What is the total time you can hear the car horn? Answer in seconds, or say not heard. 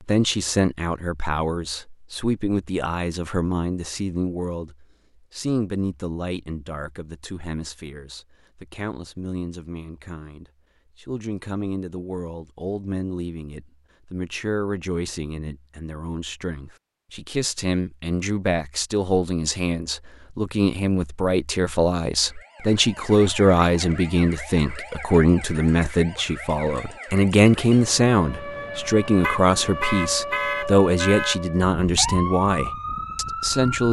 2 s.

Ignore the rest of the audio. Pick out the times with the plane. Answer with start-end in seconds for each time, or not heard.
not heard.